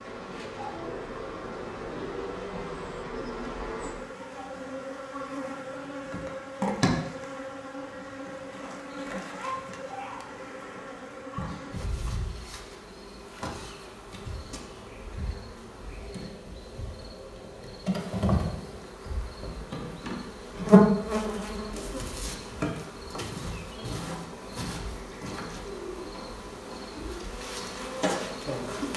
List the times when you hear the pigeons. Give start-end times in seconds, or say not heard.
0.4-2.8, 25.6-27.2.